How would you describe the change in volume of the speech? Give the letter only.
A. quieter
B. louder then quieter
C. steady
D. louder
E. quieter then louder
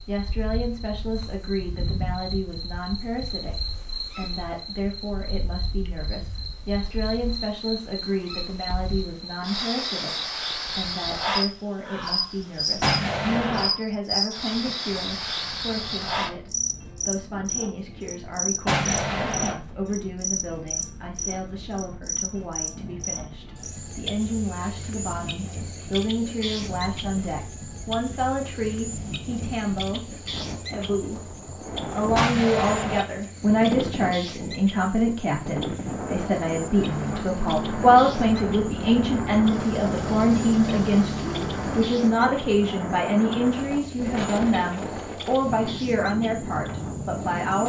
D.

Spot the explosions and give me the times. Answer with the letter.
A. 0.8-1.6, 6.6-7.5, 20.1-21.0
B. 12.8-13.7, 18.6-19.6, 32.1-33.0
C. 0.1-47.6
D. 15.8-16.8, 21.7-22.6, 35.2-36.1
B.